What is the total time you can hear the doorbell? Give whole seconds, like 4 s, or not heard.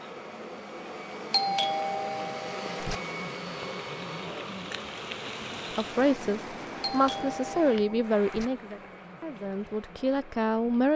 3 s.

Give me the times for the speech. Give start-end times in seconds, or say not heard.
5.7-10.9.